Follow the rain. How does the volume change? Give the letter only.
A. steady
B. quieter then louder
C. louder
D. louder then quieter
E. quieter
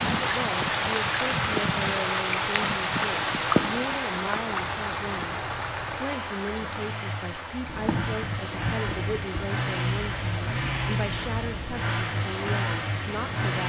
E.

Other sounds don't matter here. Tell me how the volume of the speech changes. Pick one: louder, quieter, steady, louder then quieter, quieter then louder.
steady.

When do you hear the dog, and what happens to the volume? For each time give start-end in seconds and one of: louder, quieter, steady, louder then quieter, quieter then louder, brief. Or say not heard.
not heard.